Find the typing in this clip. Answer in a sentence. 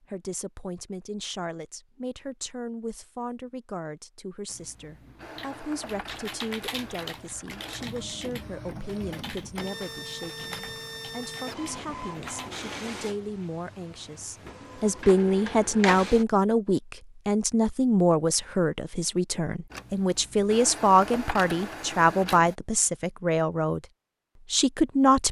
You can hear the typing from 5.0 to 12.7 s.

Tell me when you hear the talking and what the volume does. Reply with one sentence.
You can hear the talking from 0.0 to 23.8 s, getting louder; and briefly from 24.5 to 25.2 s.